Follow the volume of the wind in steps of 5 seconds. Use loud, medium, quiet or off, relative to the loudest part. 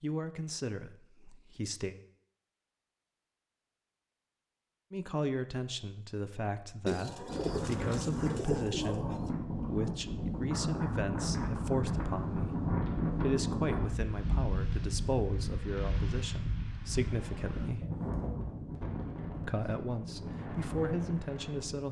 off, loud, loud, medium, medium.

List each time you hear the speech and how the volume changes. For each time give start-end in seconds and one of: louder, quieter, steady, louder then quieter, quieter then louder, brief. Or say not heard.
0.0-1.9 brief
4.9-17.9 steady
19.4-21.8 brief.